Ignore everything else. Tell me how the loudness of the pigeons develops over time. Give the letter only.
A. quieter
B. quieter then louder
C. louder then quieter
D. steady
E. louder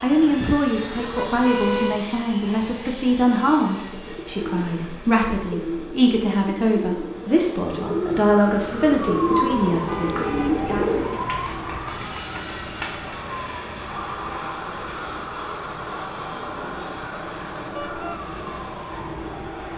E.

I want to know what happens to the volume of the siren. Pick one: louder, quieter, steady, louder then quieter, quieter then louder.
quieter.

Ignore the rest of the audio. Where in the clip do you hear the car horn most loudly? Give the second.
2 s.